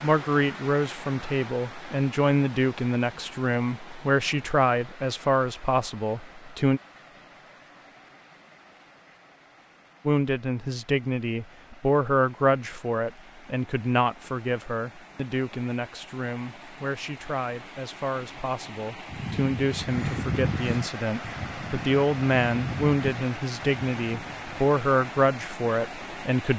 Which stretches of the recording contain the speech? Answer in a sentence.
The speech can be heard from 0.0 to 6.8 s and from 10.1 to 26.5 s.